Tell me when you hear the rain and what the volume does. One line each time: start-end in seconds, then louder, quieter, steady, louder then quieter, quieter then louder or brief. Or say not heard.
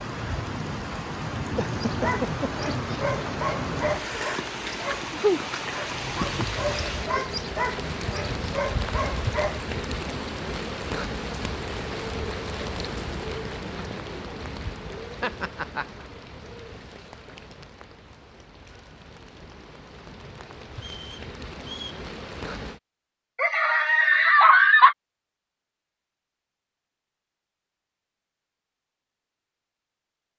0.0-22.8 quieter.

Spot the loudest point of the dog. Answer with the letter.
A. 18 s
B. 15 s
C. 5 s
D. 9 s
C.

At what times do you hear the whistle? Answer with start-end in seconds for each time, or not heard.
20.8-22.1.